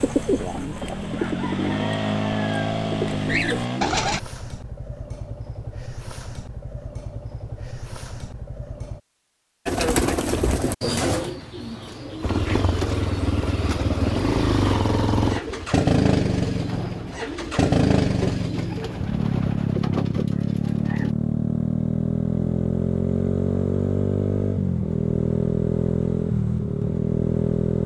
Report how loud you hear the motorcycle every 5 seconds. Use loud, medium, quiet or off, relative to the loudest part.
medium, quiet, loud, loud, loud, loud.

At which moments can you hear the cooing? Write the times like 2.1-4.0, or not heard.
0.0-4.2, 9.7-21.1.